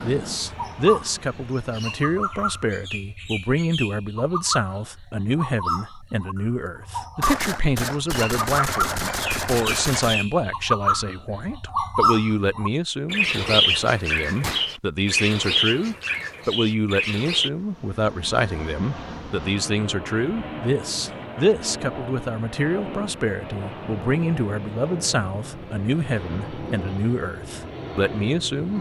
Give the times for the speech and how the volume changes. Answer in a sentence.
The speech can be heard from 0.0 to 28.7 s, at a steady volume.